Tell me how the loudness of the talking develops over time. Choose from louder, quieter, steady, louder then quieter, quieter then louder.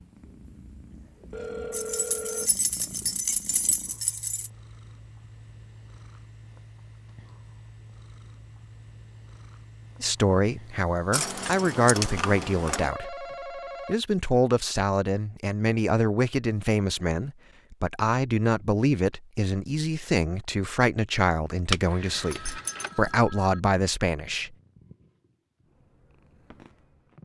steady.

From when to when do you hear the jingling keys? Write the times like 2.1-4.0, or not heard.
1.7-4.5, 11.1-12.9, 21.7-23.1.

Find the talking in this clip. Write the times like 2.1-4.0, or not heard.
10.0-24.5.